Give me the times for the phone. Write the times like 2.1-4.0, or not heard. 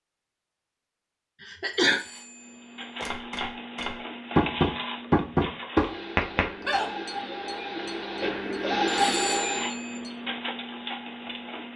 1.9-3.1, 8.8-10.0.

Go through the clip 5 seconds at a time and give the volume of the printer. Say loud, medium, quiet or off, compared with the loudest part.
medium, loud, medium.